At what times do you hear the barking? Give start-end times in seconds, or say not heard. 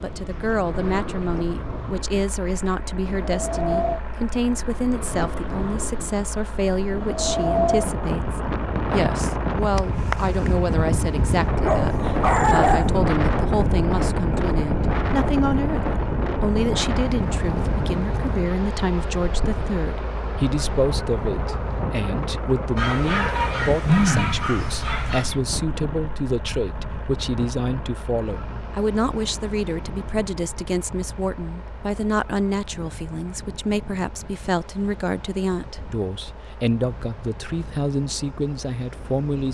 11.6-12.9, 22.8-25.3.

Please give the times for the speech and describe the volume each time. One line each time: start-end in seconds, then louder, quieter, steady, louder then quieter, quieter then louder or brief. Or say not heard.
0.0-39.4 steady.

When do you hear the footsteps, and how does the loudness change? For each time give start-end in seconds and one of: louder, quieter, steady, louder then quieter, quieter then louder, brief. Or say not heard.
not heard.